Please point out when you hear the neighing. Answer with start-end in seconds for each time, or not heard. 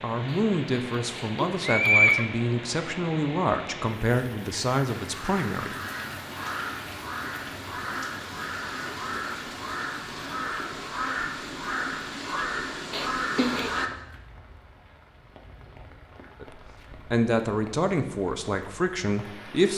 0.3-2.2, 12.9-13.8.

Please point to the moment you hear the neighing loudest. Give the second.
2 s.